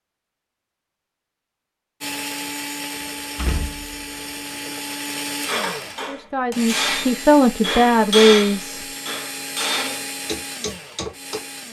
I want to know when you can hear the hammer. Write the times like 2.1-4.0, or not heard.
5.5-11.4.